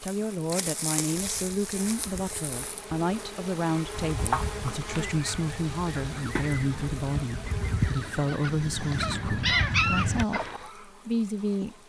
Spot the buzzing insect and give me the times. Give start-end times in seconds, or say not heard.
0.0-11.8.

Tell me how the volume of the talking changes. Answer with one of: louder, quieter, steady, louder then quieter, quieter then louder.
steady.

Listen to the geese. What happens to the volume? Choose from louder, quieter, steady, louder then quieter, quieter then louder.
louder.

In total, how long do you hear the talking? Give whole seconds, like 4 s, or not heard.
12 s.